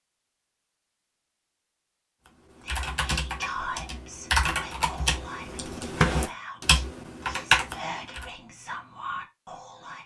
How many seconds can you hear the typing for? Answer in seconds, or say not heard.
6 s.